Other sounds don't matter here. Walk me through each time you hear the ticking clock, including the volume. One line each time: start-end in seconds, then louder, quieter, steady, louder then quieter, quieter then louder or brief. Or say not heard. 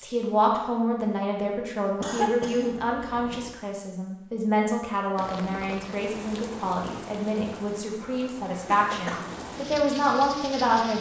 not heard.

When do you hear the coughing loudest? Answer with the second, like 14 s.
2 s.